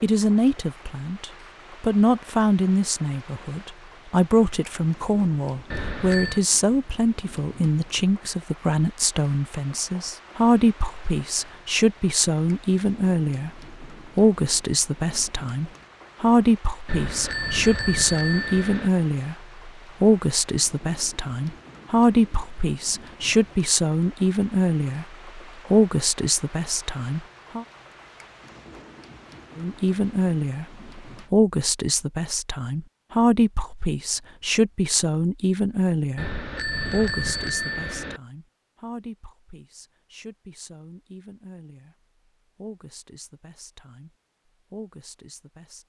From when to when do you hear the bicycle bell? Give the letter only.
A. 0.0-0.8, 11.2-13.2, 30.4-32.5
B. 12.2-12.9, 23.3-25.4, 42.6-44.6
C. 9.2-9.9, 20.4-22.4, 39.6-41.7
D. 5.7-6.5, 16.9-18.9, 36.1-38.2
D.